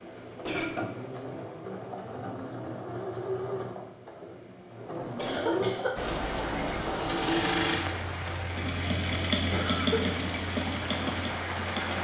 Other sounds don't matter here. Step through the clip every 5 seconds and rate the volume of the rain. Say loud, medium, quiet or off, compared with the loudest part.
off, loud, loud.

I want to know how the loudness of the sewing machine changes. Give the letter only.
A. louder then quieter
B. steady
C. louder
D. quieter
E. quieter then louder
C.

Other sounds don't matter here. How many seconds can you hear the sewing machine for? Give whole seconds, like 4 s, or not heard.
12 s.